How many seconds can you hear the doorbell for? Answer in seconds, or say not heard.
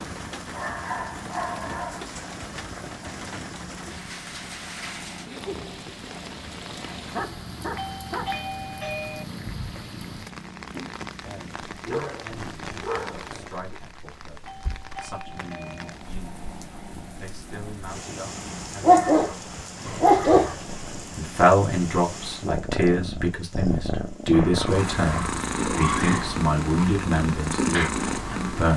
3 s.